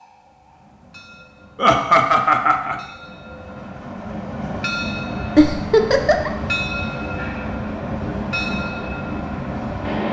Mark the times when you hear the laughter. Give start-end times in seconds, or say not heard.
1.6-2.8, 5.3-6.3.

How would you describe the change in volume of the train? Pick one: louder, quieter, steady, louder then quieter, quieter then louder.
louder.